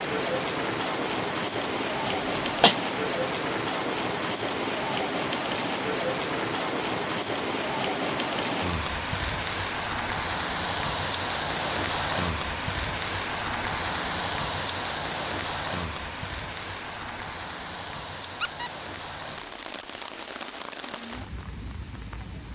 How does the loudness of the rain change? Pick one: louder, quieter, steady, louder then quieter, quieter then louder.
quieter.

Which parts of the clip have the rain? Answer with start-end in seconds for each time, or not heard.
0.0-22.4.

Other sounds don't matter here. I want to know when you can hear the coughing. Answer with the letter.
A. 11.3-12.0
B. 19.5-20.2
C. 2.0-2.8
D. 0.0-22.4
C.